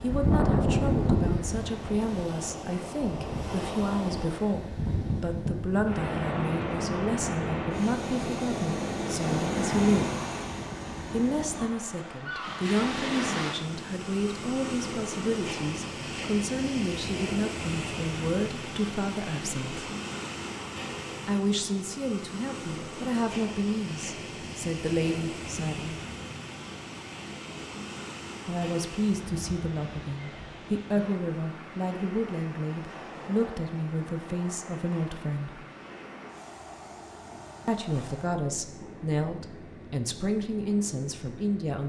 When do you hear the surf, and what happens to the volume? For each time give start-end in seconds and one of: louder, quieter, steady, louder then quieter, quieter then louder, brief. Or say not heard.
0.0-41.8 quieter.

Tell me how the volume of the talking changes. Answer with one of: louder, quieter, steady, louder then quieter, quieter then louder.
steady.